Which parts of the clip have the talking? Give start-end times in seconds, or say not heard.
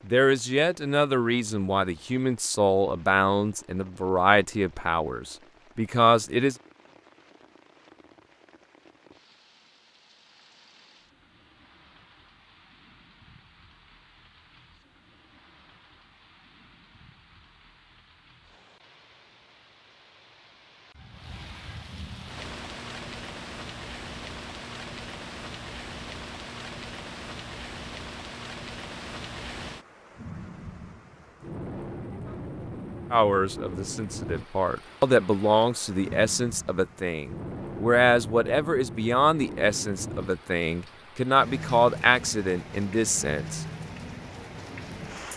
0.1-6.5, 33.1-43.6.